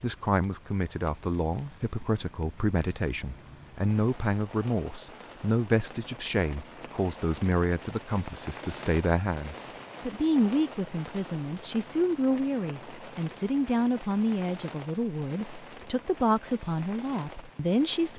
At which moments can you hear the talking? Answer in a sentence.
The talking can be heard from 0.0 to 18.1 s.